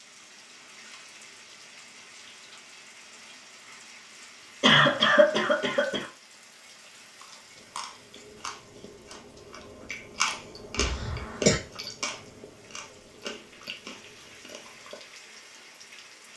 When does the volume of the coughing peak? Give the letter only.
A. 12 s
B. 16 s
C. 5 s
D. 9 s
C.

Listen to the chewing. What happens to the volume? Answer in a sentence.
The volume of the chewing goes up, then down.